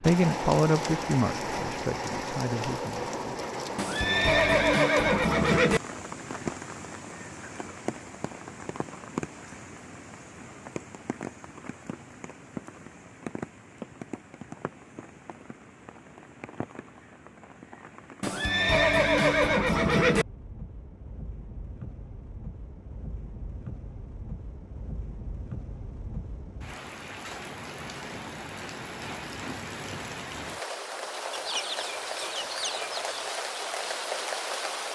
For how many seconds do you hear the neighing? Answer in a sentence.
You can hear the neighing for 4 seconds altogether.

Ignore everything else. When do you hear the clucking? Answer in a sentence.
The clucking can be heard from 31.3 to 33.3 s.